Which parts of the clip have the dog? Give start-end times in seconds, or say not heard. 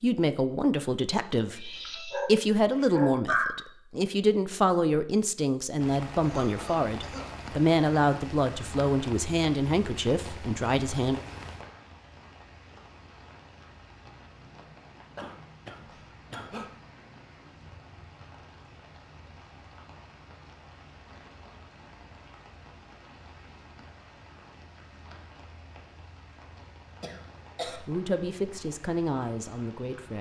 1.6-3.5.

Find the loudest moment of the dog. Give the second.
3 s.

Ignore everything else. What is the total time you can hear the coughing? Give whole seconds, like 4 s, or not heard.
4 s.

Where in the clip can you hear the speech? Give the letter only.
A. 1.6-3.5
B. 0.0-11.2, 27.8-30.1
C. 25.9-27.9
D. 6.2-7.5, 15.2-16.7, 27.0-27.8
B.